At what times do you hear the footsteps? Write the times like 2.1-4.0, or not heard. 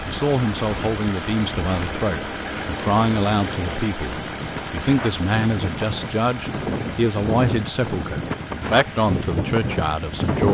not heard.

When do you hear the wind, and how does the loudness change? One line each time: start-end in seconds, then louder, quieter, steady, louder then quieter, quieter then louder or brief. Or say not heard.
0.0-10.5 louder.